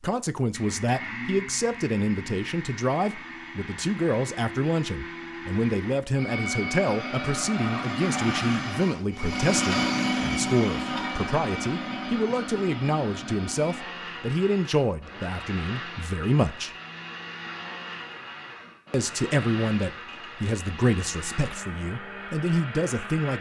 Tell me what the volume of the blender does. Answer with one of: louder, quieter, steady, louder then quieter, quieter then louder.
louder then quieter.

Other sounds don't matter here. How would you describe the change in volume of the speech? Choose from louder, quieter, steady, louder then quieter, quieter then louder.
steady.